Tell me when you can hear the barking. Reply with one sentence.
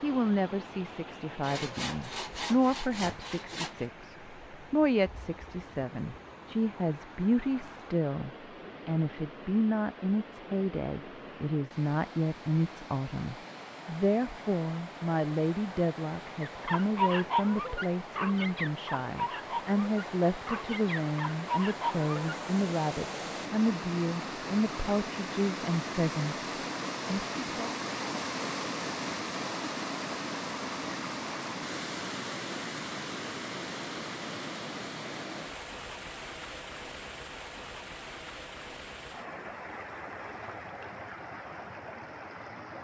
You can hear the barking from 16.4 to 22.4 s.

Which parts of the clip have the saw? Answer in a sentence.
The saw can be heard from 1.4 to 3.9 s.